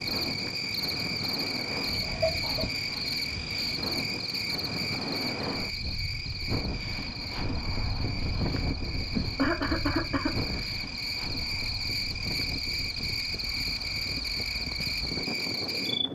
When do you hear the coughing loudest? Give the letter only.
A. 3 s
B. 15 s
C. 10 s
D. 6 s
C.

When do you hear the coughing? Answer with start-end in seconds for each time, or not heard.
2.0-3.0, 9.2-10.7.